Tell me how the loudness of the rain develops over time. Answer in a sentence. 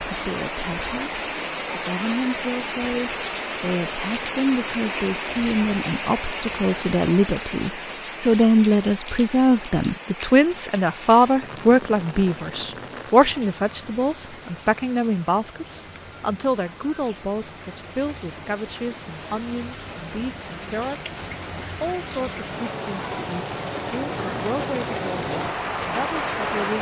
The volume of the rain goes down, then up.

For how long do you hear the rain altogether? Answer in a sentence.
You can hear the rain for 27 seconds altogether.